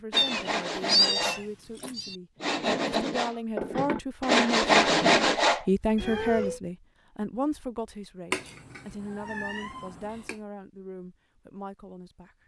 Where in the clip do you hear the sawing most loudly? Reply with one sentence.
The volume of the sawing peaks at 5 seconds.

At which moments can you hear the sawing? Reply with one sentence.
The sawing can be heard from 0.1 to 5.7 s.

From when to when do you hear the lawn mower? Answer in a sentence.
You can't hear the lawn mower here.